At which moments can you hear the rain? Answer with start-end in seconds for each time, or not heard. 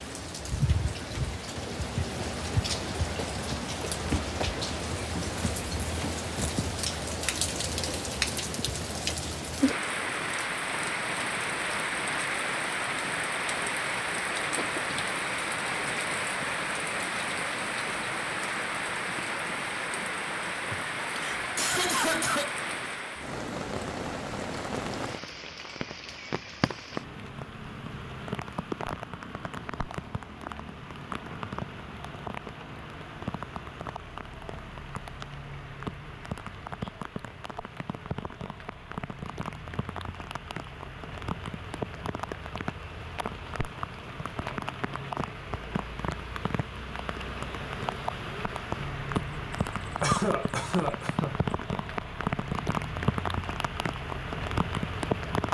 0.0-55.5.